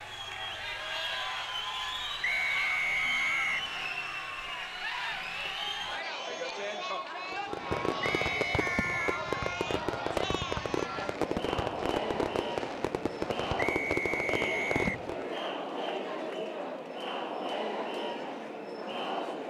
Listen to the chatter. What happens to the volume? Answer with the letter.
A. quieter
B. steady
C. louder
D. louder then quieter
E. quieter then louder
B.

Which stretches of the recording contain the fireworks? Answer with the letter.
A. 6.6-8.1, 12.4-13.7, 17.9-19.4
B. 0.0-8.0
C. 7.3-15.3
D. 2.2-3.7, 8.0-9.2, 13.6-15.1
C.